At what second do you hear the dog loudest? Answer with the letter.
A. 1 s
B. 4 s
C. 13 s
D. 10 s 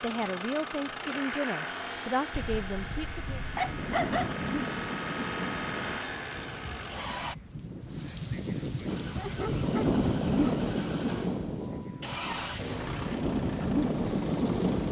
B.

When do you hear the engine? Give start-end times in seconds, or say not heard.
0.0-7.3, 8.8-14.8.